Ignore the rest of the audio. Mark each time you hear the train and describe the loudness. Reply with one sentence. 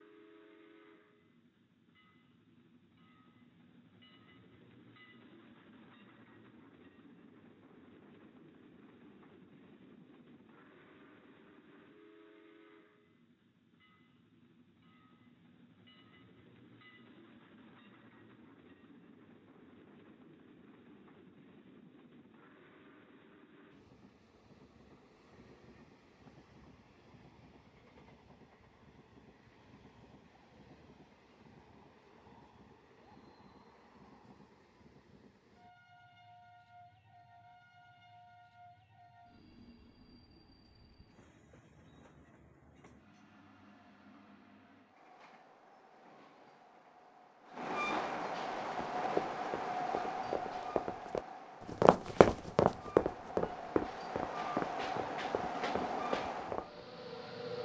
You can hear the train from 0.0 to 57.5 s, getting louder.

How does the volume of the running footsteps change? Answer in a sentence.
The volume of the running footsteps goes up, then down.